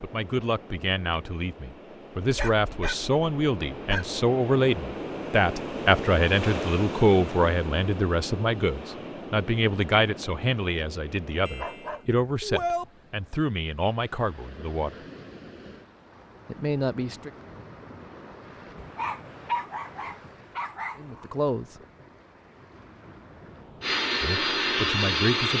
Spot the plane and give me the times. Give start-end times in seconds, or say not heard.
23.8-25.5.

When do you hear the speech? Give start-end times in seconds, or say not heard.
0.0-14.9, 16.4-17.4, 20.9-21.8, 24.2-25.5.